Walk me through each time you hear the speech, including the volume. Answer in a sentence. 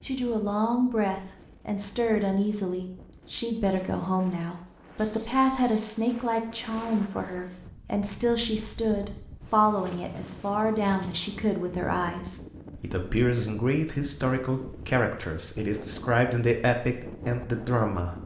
You can hear the speech from 0.1 to 18.2 s, at a steady volume.